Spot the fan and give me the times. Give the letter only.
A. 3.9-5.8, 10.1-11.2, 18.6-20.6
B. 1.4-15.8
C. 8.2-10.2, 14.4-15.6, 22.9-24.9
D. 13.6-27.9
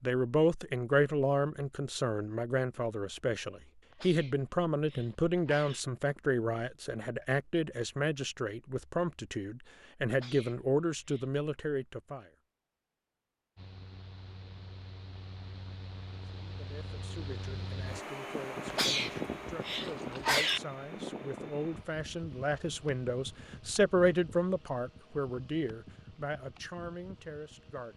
D.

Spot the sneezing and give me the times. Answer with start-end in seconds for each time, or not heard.
3.9-5.8, 10.1-11.2, 18.6-20.6.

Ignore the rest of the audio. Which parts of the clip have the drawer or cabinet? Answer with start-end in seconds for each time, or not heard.
not heard.